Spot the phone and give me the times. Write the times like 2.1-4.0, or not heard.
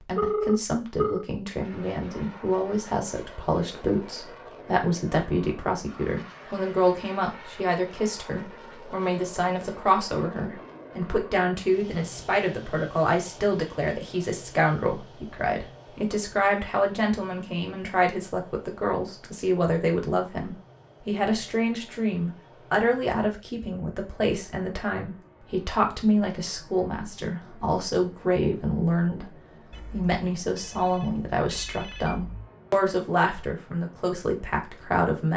0.1-1.2, 29.7-32.5.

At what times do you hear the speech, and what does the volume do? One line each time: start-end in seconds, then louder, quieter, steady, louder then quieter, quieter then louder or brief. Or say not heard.
0.0-35.3 steady.